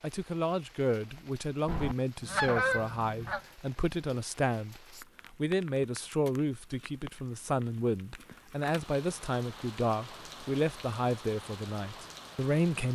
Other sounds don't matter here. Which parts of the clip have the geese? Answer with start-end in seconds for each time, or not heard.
1.6-3.4.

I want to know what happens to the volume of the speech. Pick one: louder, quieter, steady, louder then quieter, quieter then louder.
steady.